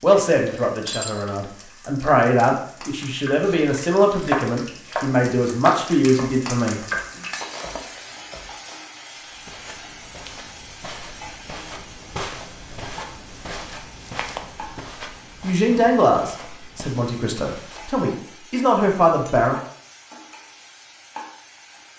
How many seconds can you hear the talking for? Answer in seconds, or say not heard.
11 s.